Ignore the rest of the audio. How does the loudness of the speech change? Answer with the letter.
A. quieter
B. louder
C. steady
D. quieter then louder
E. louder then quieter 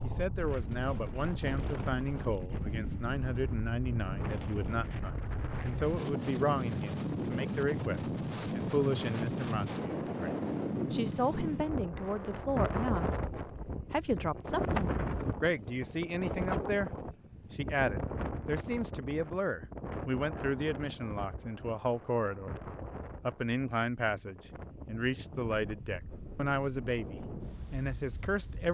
C.